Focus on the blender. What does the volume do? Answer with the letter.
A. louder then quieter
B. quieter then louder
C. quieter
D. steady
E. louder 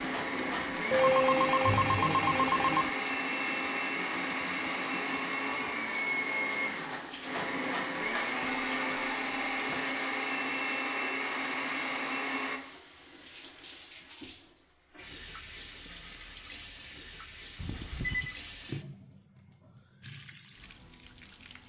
D.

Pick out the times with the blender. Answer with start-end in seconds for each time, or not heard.
0.0-12.6.